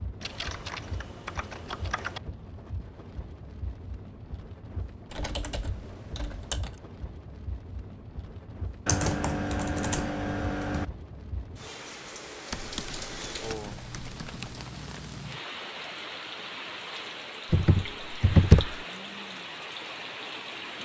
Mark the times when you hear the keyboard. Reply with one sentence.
The keyboard can be heard from 0.2 to 2.2 s, from 5.0 to 6.8 s, from 8.8 to 10.8 s, from 12.5 to 14.6 s and from 17.5 to 18.9 s.